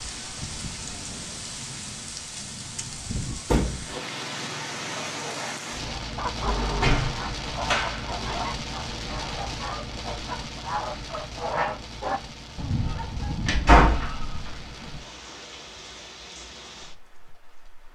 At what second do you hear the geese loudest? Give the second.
12 s.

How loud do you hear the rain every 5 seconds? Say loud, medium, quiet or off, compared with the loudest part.
loud, loud, medium, medium.